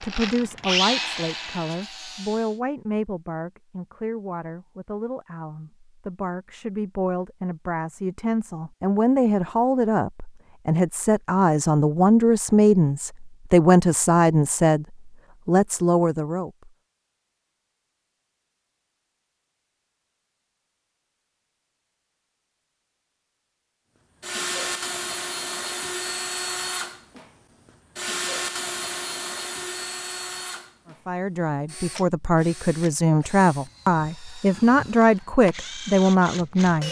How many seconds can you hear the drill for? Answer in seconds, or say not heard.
15 s.